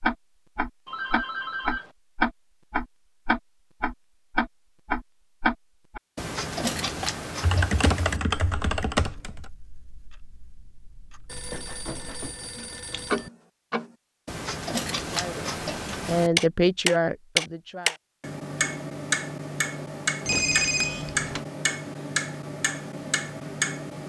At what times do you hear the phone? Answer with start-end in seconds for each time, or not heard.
0.8-1.9, 11.3-13.3, 20.2-21.4.